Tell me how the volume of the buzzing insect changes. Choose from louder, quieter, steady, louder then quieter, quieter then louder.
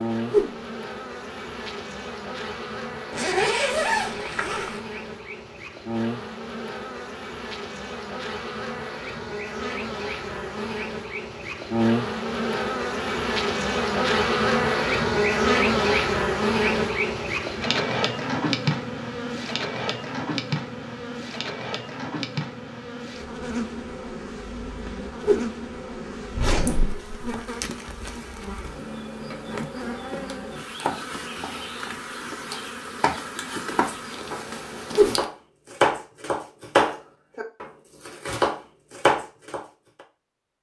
louder then quieter.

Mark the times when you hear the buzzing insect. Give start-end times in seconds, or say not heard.
0.0-35.3.